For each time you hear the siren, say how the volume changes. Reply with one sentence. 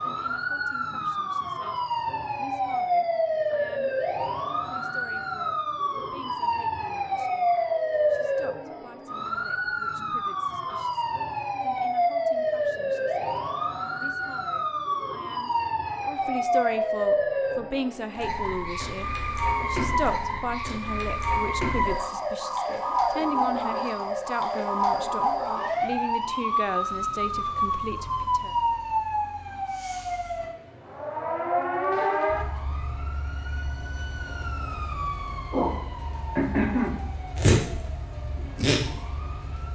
The siren can be heard from 0.0 to 39.7 s, at a steady volume.